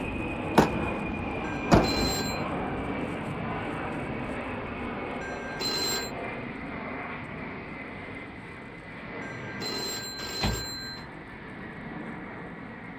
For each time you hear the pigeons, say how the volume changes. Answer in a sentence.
You can't hear the pigeons here.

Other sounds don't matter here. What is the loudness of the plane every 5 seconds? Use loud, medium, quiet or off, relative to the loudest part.
loud, medium, medium.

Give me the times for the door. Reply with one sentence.
The door can be heard from 0.6 to 2.1 s and from 10.2 to 11.1 s.